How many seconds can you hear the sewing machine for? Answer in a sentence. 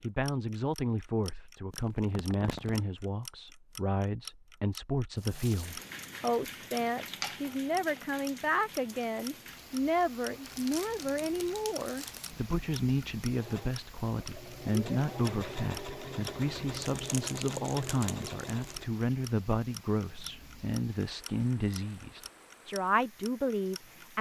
The sewing machine can be heard for 6 seconds in total.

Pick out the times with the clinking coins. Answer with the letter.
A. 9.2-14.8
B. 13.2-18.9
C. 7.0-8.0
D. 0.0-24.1
C.